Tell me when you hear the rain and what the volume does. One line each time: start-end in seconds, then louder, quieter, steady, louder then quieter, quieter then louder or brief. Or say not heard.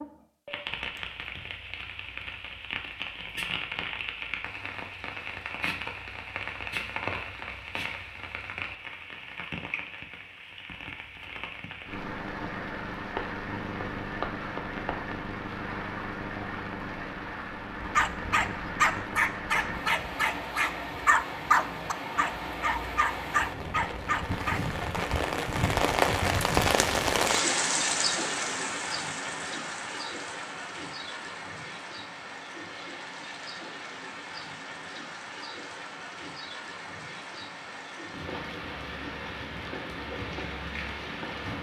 0.0-41.5 louder then quieter.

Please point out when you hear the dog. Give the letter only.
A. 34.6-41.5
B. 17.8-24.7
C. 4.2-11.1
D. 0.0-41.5
B.